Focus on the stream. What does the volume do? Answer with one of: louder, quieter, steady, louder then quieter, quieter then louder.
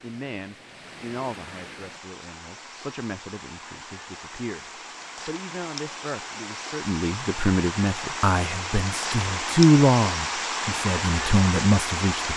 louder.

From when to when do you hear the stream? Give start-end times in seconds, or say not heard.
0.0-12.3.